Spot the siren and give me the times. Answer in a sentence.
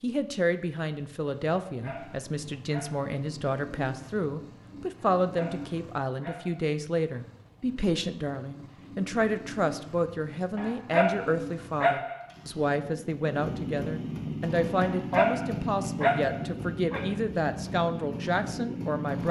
You can't hear the siren here.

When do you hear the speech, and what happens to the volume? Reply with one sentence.
You can hear the speech from 0.0 to 19.2 s, at a steady volume.